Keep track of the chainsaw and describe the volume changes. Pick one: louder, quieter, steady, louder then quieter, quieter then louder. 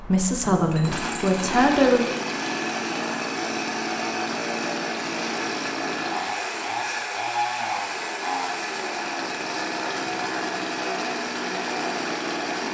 steady.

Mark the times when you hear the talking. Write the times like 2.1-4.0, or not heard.
0.0-2.0.